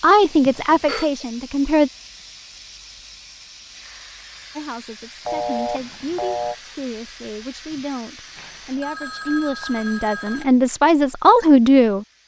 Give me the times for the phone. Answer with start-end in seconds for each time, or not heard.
0.5-1.1, 5.2-6.5, 8.3-10.4.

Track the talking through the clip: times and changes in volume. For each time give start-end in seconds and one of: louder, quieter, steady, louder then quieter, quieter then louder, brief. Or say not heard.
0.0-1.9 brief
4.5-12.1 louder.